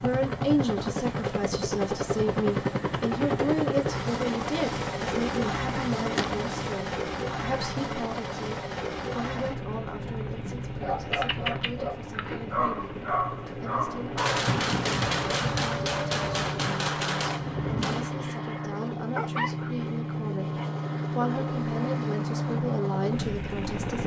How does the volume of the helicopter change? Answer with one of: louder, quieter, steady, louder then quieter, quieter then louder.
quieter then louder.